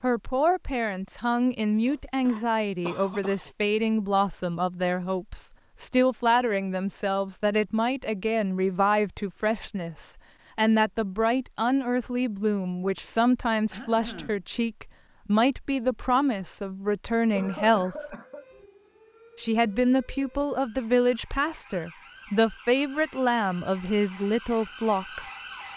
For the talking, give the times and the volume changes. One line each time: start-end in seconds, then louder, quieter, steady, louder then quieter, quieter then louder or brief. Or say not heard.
0.0-18.1 steady
19.4-25.2 steady.